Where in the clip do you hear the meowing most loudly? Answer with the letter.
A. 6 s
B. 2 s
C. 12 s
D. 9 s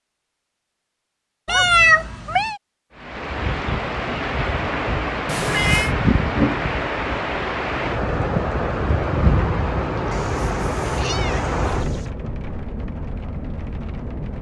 B.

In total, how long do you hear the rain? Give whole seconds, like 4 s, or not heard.
11 s.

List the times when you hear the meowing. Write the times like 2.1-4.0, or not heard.
1.4-2.6, 5.2-6.0, 10.1-12.1.